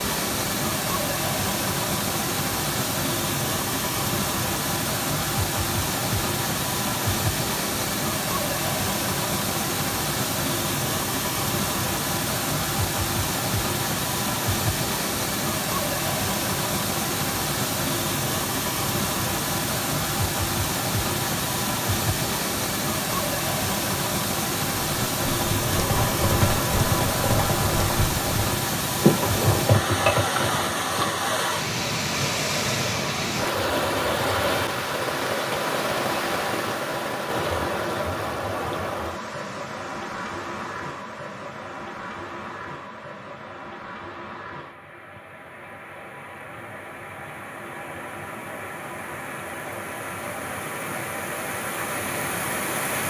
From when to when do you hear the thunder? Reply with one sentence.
The thunder can't be heard in this clip.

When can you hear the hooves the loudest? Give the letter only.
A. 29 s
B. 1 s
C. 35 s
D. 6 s
A.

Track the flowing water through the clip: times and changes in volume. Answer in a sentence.
The flowing water can be heard from 0.0 to 53.0 s, getting quieter.